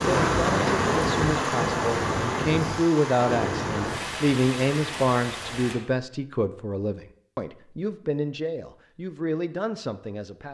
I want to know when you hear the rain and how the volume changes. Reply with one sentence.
The rain can be heard from 0.0 to 5.8 s, getting quieter.